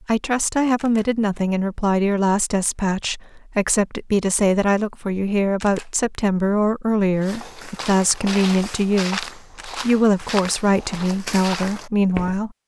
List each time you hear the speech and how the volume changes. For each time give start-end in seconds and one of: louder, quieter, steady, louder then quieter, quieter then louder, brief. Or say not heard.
0.1-12.6 steady.